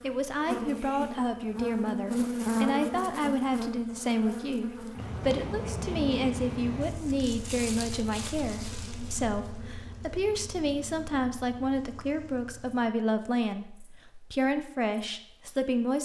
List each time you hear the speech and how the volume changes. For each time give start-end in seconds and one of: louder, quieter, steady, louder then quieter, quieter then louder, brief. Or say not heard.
0.0-15.9 steady.